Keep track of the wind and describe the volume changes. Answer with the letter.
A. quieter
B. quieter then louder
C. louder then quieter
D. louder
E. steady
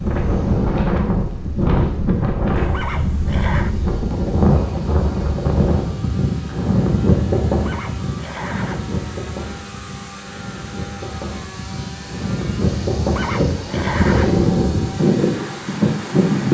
B.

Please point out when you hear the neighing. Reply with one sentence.
You can hear the neighing from 2.7 to 3.8 s, from 7.7 to 8.9 s and from 13.2 to 14.4 s.